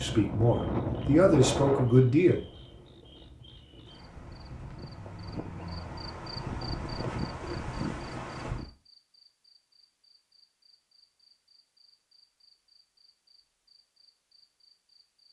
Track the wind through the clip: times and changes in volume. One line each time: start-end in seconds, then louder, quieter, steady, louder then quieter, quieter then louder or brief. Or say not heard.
0.0-8.7 quieter then louder.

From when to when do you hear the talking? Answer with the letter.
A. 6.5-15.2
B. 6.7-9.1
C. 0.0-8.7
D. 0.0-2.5
D.